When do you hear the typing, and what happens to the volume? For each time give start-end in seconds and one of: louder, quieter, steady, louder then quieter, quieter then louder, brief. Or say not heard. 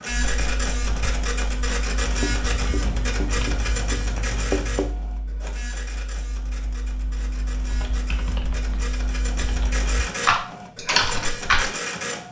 0.1-11.7 quieter then louder.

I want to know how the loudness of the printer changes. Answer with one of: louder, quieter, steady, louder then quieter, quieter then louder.
quieter then louder.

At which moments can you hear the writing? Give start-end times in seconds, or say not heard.
2.1-5.0.